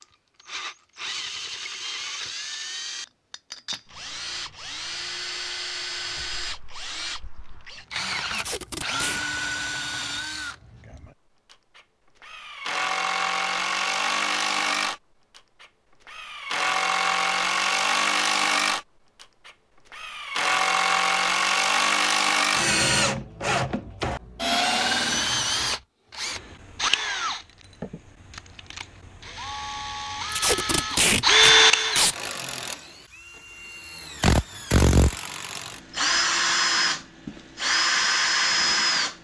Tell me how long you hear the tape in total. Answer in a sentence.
You can hear the tape for 3 seconds altogether.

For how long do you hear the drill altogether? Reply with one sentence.
You can hear the drill for 39 seconds altogether.